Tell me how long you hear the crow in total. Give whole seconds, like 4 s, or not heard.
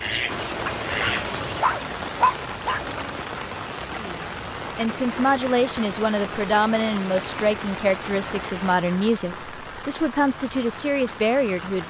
2 s.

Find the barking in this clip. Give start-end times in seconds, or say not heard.
0.7-3.2.